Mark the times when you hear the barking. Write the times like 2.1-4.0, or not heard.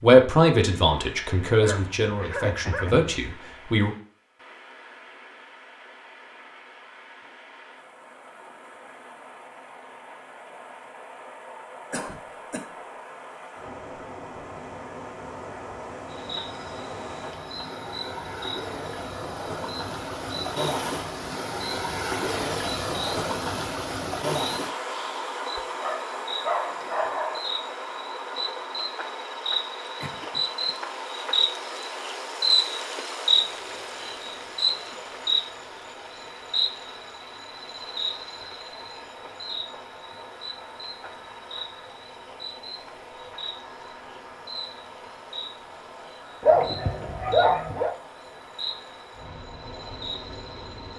1.6-3.1, 25.4-27.4, 46.4-48.0.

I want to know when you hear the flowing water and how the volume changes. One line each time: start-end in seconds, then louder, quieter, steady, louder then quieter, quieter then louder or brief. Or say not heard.
0.0-50.9 louder then quieter.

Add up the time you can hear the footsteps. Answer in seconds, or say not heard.
not heard.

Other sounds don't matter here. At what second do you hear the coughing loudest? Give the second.
12 s.